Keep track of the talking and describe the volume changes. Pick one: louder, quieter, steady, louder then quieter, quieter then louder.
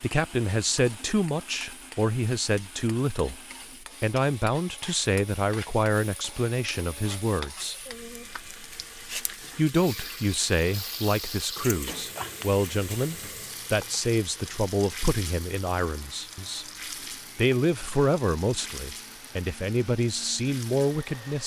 steady.